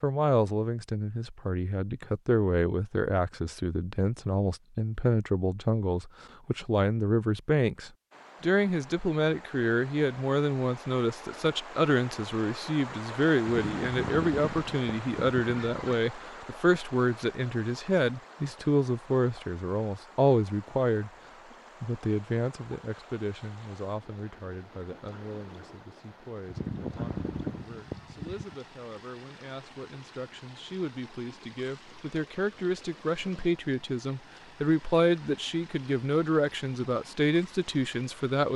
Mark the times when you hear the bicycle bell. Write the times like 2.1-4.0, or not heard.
not heard.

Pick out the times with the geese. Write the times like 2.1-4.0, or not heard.
13.4-16.0, 26.4-28.6.